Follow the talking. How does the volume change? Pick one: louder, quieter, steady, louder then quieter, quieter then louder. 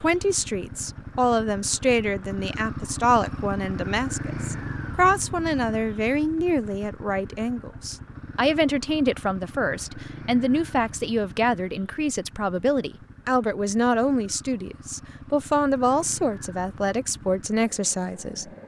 steady.